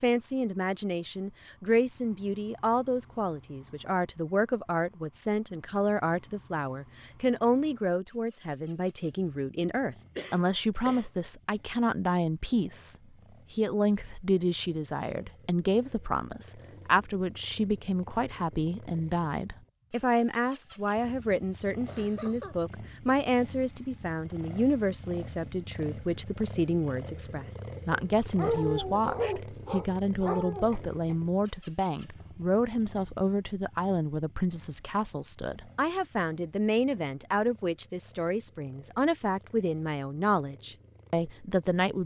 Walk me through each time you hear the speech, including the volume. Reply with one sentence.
The speech can be heard from 0.0 to 42.0 s, at a steady volume.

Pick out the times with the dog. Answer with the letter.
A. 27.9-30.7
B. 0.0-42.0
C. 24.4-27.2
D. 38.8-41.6
A.